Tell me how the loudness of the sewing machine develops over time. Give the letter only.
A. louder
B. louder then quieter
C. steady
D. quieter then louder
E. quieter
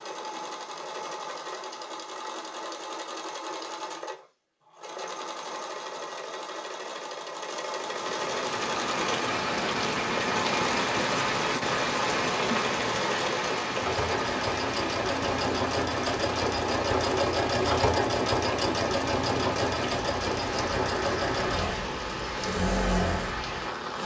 A.